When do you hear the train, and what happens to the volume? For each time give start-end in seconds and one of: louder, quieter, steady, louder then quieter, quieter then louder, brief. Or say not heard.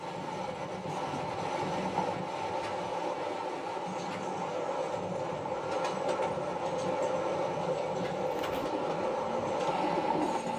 0.0-10.5 steady.